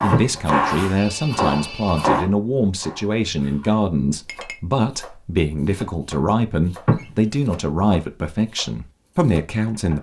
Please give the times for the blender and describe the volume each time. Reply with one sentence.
You can't hear the blender here.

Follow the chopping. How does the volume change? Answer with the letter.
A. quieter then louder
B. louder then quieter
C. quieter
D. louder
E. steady
C.